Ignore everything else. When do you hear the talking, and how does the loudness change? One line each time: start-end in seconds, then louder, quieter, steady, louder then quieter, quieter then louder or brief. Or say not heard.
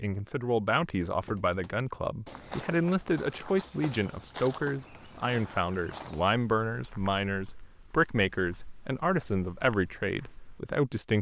0.0-11.1 steady.